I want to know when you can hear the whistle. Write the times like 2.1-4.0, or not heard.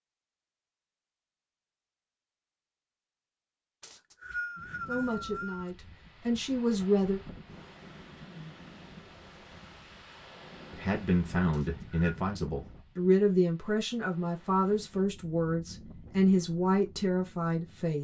3.8-5.7, 11.5-12.2.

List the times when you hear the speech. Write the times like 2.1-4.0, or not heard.
4.8-7.2, 10.7-17.9.